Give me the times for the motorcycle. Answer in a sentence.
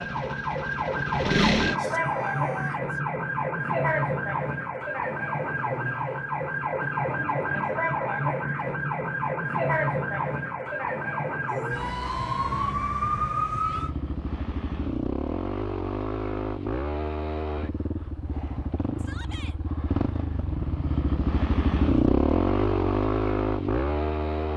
The motorcycle can be heard from 0.0 to 1.8 s and from 13.7 to 24.5 s.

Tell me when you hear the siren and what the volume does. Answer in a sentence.
The siren can be heard from 0.0 to 13.9 s, at a steady volume.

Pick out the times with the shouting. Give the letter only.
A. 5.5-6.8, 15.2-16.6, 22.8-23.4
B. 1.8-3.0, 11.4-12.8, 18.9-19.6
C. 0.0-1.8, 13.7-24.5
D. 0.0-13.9
B.